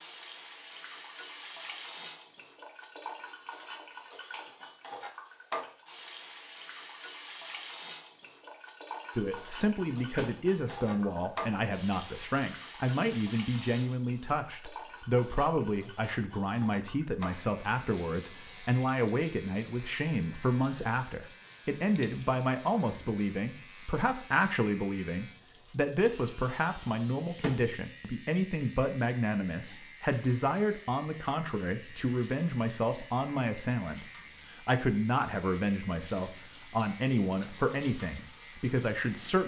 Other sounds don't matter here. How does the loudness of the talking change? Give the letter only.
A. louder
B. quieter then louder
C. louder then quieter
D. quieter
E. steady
E.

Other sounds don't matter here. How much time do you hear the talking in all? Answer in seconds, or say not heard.
30 s.